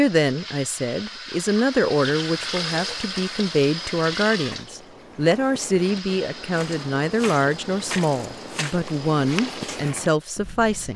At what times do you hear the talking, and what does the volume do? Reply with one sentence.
You can hear the talking from 0.0 to 10.9 s, at a steady volume.